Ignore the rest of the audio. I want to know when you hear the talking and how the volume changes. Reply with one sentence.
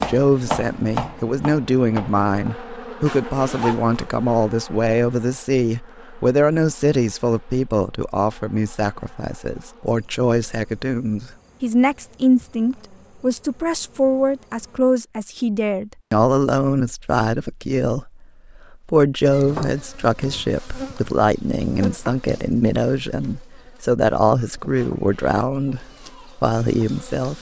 The talking can be heard from 0.1 to 27.3 s, at a steady volume.